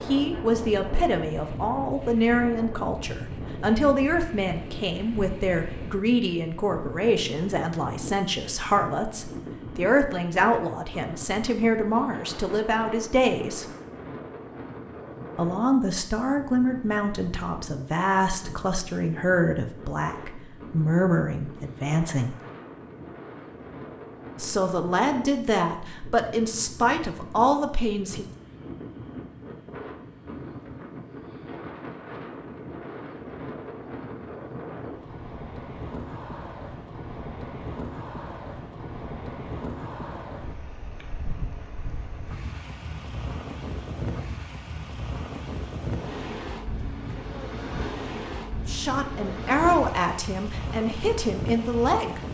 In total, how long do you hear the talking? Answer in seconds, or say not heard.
28 s.